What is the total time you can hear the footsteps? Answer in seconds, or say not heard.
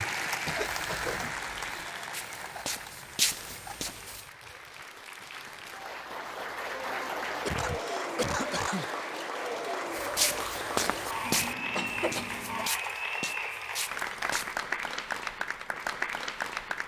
7 s.